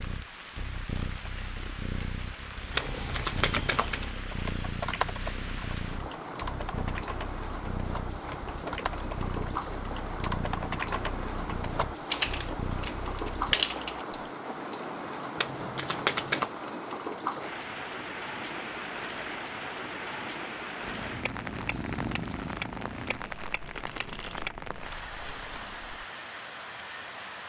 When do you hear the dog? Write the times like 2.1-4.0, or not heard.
not heard.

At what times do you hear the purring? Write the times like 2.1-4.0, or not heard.
0.0-13.6, 20.8-26.1.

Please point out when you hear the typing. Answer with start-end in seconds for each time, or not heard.
2.7-14.3.